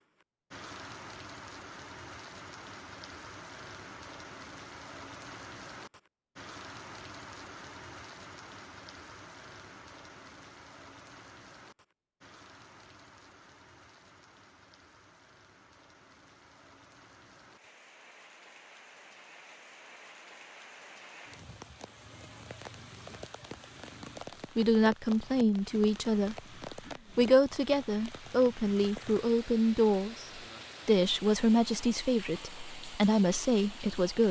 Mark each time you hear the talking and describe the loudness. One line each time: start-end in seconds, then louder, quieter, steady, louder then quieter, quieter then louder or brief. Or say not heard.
24.6-26.4 brief
27.1-34.2 steady.